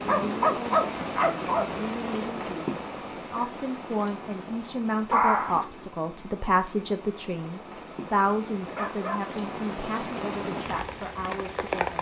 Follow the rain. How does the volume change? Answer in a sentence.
The volume of the rain goes down, then up.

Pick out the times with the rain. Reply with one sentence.
The rain can be heard from 0.0 to 11.9 s.